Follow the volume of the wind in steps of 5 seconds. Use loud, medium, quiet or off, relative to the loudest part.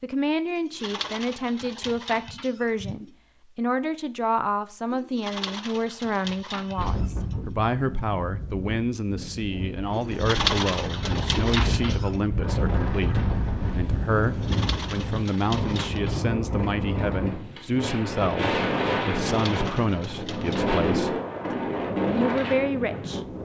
off, medium, loud, loud, loud.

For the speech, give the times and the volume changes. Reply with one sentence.
You can hear the speech from 0.0 to 21.2 s, at a steady volume; and briefly from 21.9 to 23.2 s.